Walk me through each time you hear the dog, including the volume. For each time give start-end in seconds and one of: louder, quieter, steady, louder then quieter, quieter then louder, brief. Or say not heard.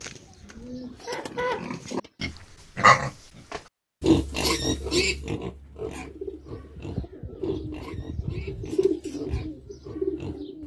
not heard.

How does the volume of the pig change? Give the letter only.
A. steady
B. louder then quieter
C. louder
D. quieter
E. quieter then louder
B.